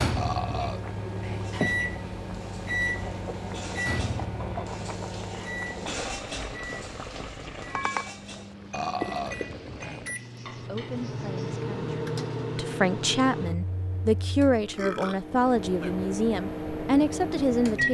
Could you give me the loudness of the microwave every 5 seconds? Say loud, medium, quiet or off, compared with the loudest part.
loud, medium, loud, loud.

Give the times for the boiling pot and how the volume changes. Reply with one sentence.
The boiling pot can be heard from 0.0 to 10.2 s, at a steady volume.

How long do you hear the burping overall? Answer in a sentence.
You can hear the burping for 4 seconds altogether.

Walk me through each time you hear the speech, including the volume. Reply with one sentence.
You can hear the speech from 10.7 to 17.8 s, getting louder.